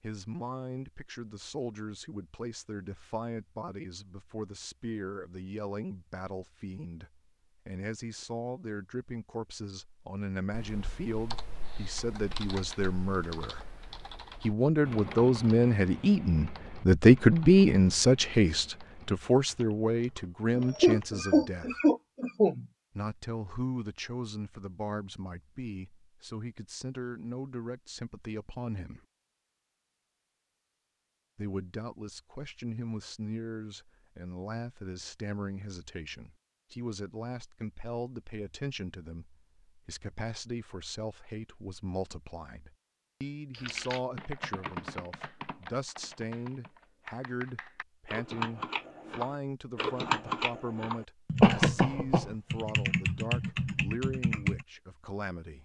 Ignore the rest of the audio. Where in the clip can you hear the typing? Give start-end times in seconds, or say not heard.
10.5-21.2, 43.5-54.6.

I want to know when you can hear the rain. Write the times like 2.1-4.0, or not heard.
not heard.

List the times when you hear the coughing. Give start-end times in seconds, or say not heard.
20.5-22.6, 51.4-52.2.